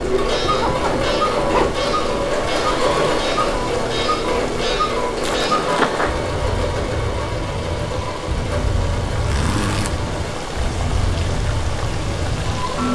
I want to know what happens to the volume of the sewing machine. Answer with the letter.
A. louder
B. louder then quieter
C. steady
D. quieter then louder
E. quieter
E.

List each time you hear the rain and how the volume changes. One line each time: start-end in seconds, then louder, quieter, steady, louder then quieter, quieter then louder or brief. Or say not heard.
0.0-12.9 quieter then louder.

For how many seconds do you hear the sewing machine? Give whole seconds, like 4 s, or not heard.
13 s.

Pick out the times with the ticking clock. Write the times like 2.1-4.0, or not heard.
0.1-12.9.